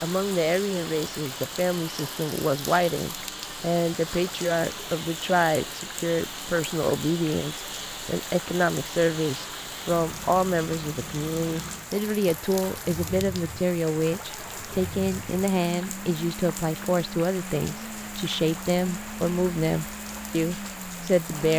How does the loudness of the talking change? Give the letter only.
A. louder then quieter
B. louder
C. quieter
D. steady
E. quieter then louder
D.